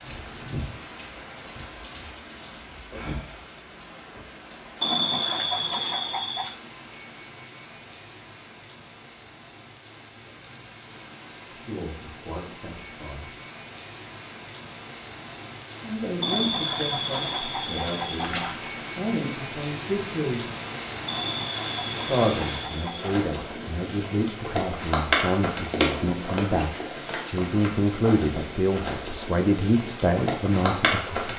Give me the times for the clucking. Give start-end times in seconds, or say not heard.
4.8-6.5, 16.2-18.7, 21.1-23.2.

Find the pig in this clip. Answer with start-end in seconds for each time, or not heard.
not heard.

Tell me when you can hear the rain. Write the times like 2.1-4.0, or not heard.
0.0-31.3.